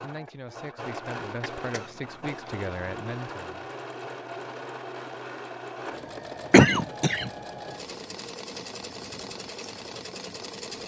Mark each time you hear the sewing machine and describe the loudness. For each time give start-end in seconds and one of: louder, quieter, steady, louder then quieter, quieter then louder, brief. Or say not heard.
0.0-10.8 steady.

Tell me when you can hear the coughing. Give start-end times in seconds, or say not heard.
1.7-2.5, 6.5-7.3.